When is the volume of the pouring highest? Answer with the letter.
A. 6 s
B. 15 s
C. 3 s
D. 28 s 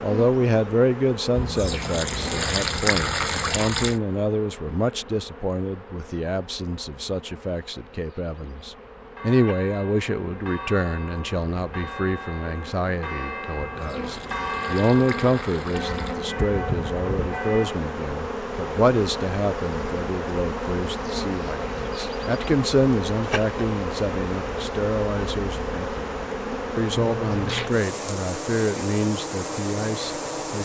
C.